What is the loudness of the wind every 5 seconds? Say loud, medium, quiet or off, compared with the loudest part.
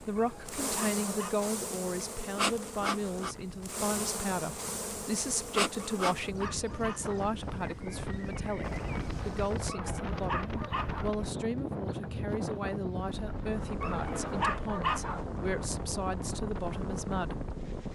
quiet, loud, loud, loud.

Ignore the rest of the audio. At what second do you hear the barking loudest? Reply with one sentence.
The volume of the barking peaks at 15 seconds.